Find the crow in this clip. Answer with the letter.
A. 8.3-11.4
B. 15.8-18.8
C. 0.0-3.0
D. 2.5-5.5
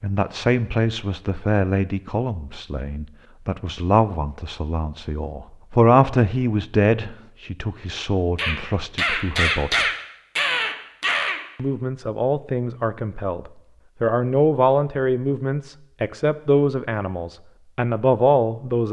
A.